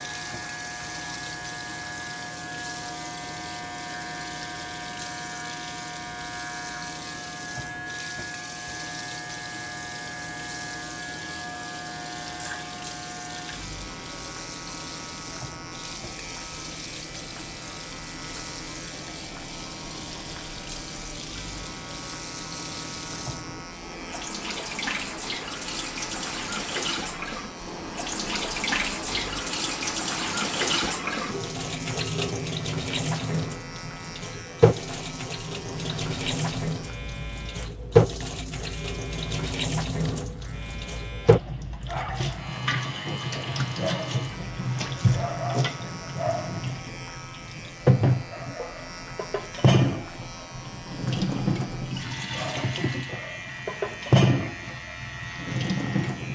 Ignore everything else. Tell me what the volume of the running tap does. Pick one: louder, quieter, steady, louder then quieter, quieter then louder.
louder.